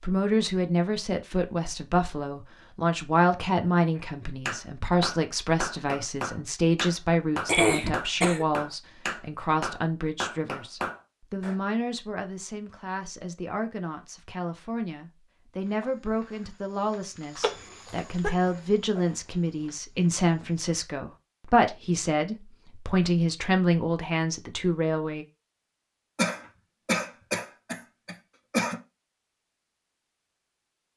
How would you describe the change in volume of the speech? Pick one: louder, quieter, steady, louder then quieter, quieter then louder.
quieter then louder.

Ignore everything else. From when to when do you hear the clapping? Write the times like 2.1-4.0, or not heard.
4.0-11.6.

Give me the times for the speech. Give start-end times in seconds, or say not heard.
0.0-25.2.